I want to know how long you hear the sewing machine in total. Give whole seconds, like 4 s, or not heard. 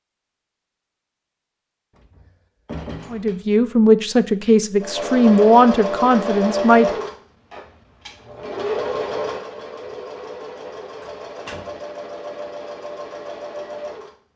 9 s.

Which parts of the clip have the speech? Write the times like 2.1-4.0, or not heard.
3.1-6.9.